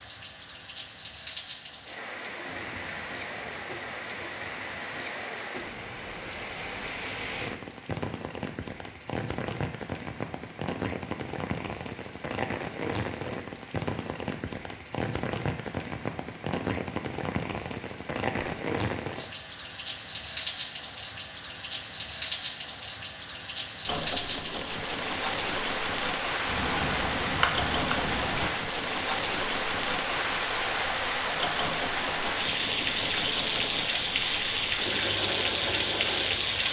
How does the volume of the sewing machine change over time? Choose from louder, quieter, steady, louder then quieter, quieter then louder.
steady.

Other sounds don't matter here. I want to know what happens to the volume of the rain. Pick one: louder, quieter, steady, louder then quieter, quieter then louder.
louder.